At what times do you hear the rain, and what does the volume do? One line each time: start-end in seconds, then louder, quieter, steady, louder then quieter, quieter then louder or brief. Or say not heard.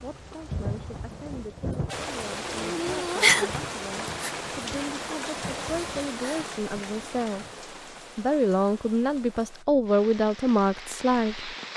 0.0-11.7 louder then quieter.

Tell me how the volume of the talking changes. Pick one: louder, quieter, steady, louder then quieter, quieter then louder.
louder.